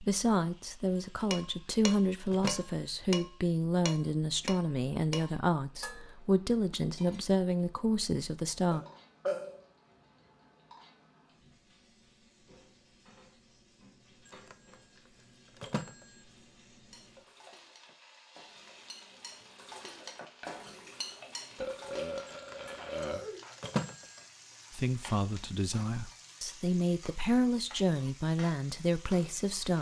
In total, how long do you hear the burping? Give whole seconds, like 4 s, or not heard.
3 s.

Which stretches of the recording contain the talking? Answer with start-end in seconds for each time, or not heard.
0.0-8.8, 24.7-29.7.